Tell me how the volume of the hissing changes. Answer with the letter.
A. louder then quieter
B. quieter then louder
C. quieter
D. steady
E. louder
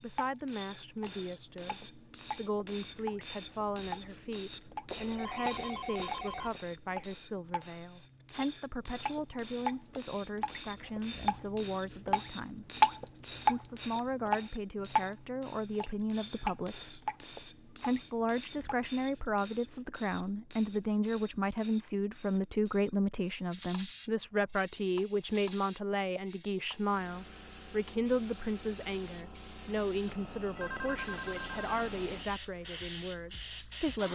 C.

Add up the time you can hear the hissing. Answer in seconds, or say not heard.
34 s.